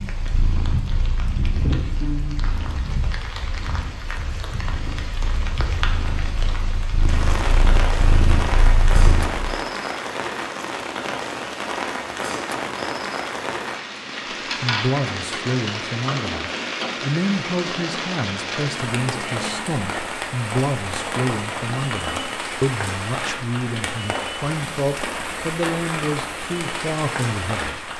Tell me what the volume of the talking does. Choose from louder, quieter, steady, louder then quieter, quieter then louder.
steady.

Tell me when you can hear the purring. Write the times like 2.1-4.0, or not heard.
0.1-9.6.